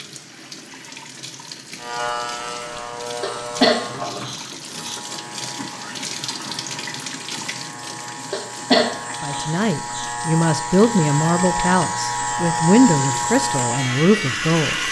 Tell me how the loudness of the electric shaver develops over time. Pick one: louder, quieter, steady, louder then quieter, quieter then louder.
quieter then louder.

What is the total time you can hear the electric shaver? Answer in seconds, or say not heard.
13 s.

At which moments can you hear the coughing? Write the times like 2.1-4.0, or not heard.
3.2-5.0, 8.3-10.1.